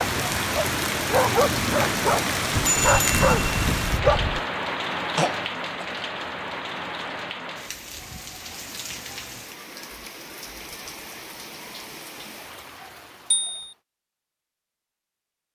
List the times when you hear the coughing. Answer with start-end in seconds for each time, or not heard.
5.2-5.8.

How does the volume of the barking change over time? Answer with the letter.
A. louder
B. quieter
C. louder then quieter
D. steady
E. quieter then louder
A.